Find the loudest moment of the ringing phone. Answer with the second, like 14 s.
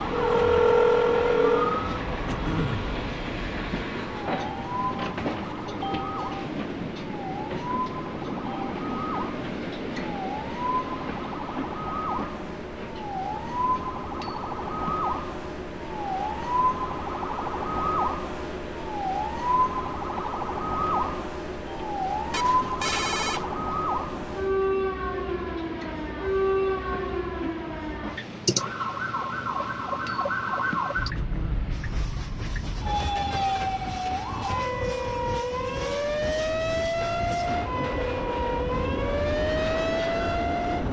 1 s.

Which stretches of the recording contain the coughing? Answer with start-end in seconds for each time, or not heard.
2.2-2.9, 31.1-31.7.